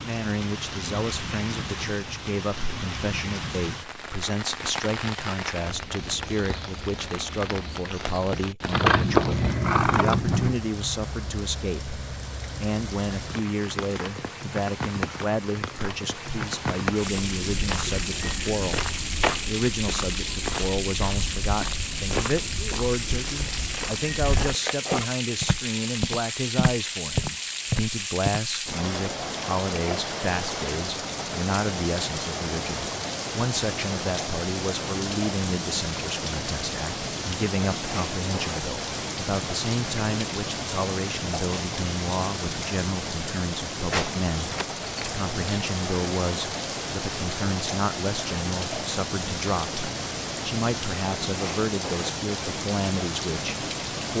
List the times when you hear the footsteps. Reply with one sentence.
The footsteps can be heard from 16.9 to 28.4 s.